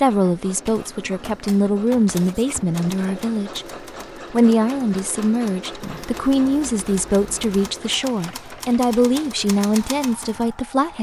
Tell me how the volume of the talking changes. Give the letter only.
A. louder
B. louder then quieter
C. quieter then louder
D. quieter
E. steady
E.